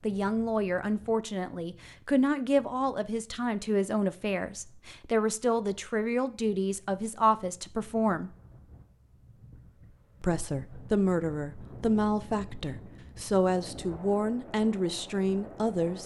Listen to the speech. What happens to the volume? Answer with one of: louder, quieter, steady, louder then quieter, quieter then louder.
steady.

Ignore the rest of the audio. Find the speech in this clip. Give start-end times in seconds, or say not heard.
0.0-8.3, 10.2-16.0.